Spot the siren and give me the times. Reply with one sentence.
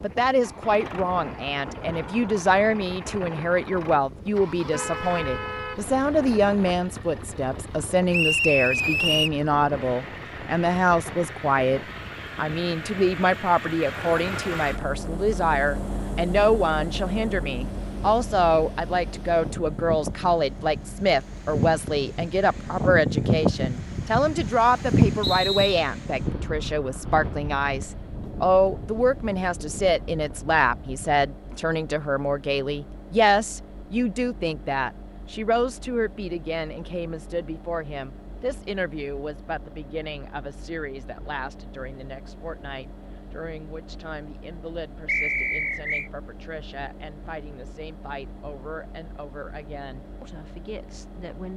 The siren can't be heard in this clip.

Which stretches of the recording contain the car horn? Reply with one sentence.
You can hear the car horn from 4.7 to 6.3 s.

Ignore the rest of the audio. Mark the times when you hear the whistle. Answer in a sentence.
You can hear the whistle from 8.1 to 9.3 s, from 25.2 to 25.9 s and from 45.0 to 46.1 s.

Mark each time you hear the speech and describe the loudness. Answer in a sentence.
You can hear the speech from 0.0 to 51.5 s, getting quieter.